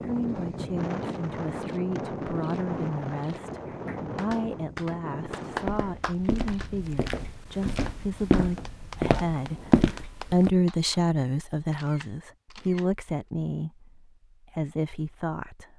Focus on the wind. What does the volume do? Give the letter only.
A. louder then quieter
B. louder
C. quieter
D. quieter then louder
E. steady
C.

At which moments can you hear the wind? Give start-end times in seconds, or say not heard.
0.0-9.8.